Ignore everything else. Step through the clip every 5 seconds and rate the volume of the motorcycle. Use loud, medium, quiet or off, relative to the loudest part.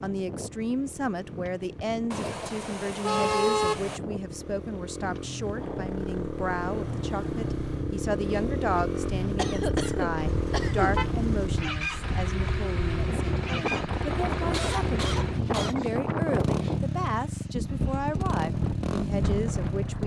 quiet, loud, loud, loud.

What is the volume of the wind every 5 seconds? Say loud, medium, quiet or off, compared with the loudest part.
medium, medium, loud, loud.